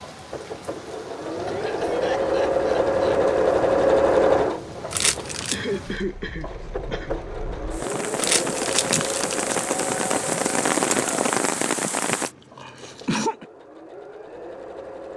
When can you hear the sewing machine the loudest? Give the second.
4 s.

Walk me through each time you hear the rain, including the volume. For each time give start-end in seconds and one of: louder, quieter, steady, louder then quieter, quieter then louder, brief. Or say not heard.
0.0-12.3 louder.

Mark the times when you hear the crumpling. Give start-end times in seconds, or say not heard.
4.9-5.5, 8.2-9.6.